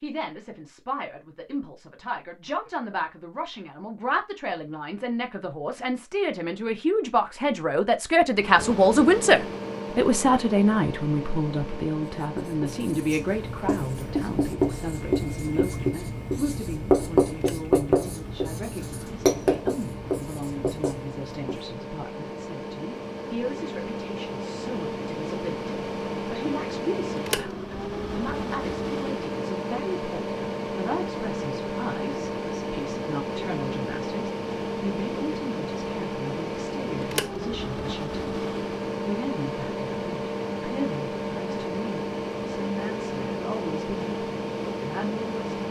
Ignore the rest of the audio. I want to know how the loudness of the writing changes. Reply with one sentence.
The volume of the writing goes up, then down.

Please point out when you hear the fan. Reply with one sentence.
You can hear the fan from 8.3 to 45.6 s.